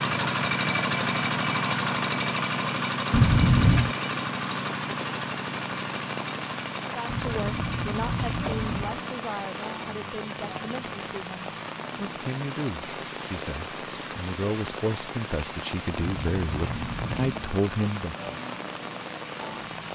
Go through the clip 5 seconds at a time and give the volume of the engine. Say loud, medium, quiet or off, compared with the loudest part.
loud, medium, quiet, quiet.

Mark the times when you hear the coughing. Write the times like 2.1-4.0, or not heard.
not heard.